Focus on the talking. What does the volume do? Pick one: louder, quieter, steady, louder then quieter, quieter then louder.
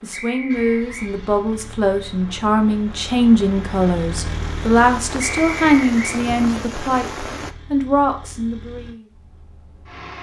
steady.